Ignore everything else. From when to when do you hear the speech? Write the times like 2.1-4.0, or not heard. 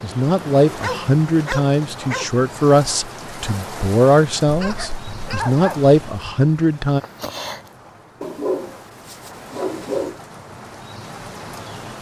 0.0-7.0.